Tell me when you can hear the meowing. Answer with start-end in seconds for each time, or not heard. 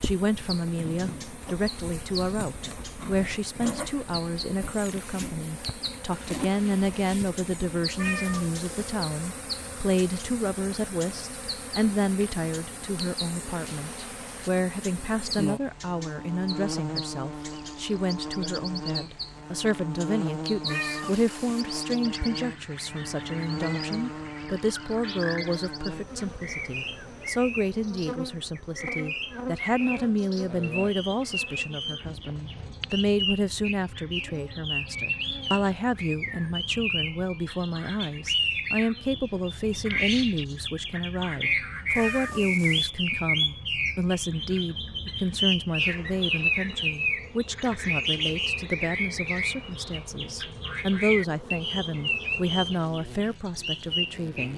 8.0-8.9, 20.6-21.6, 42.0-42.9.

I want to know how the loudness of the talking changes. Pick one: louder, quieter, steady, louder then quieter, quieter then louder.
steady.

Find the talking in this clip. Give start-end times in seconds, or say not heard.
0.0-54.5.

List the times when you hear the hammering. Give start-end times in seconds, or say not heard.
not heard.